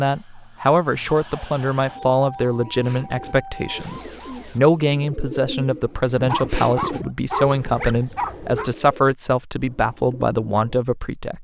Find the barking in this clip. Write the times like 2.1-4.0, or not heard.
6.2-8.7.